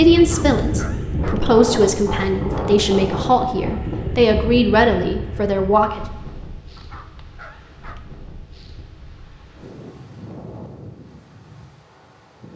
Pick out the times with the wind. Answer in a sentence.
The wind can be heard from 0.0 to 12.5 s.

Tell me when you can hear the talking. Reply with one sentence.
The talking can be heard from 0.0 to 6.0 s.